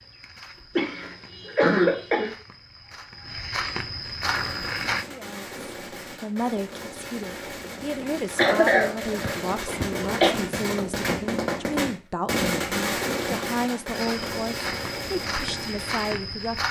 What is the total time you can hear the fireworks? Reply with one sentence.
The fireworks can be heard for 12 seconds in total.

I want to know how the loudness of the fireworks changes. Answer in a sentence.
The volume of the fireworks goes up, then down.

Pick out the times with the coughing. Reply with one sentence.
You can hear the coughing from 0.8 to 2.3 s and from 8.3 to 10.3 s.